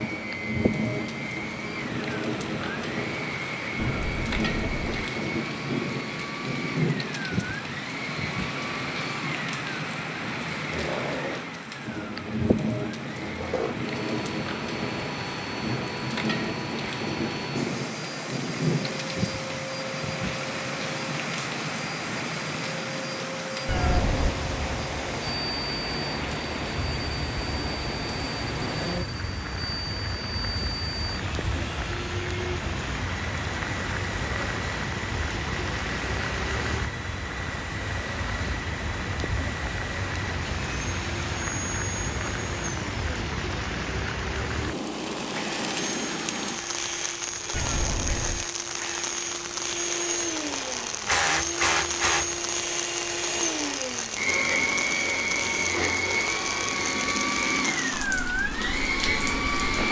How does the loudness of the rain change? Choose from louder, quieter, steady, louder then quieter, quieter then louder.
steady.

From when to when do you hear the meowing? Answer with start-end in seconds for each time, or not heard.
3.8-5.0, 23.6-24.4, 47.5-48.5.